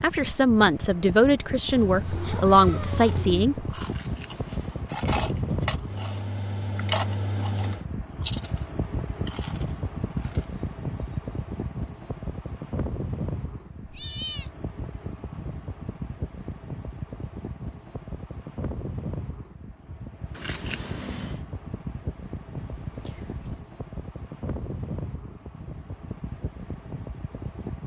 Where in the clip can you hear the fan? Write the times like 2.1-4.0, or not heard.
0.0-27.8.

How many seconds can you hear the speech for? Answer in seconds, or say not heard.
4 s.